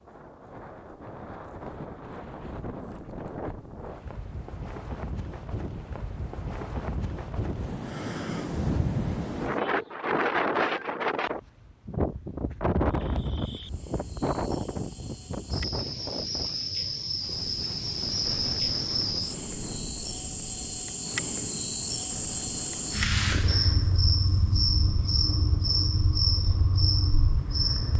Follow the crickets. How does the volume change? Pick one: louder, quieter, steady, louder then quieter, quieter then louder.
louder.